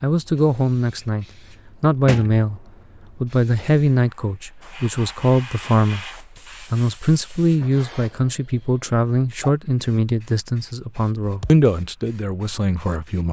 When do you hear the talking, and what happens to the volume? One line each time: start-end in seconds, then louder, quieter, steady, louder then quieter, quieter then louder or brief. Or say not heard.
0.0-13.2 steady.